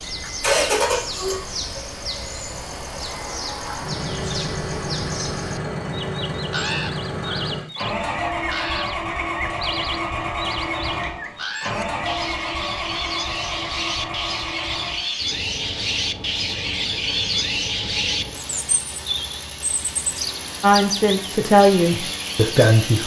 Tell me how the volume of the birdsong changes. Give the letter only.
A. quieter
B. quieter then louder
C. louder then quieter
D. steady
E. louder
E.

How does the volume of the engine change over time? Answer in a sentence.
The volume of the engine goes down.